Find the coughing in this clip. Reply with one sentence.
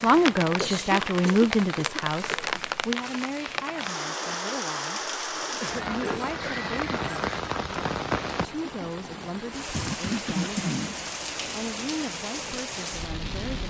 You can hear the coughing from 0.6 to 2.5 s, from 5.4 to 6.3 s, from 7.0 to 7.4 s and from 9.7 to 10.9 s.